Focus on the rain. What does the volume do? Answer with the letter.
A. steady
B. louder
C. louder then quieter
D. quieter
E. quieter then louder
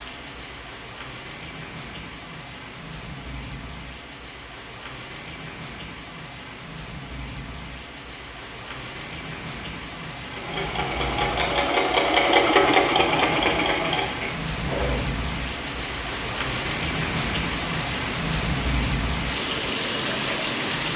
B.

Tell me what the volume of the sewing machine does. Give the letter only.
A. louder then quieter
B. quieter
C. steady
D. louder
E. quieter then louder
A.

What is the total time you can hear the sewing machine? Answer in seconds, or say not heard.
5 s.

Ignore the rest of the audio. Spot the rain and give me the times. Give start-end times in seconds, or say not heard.
0.0-20.9.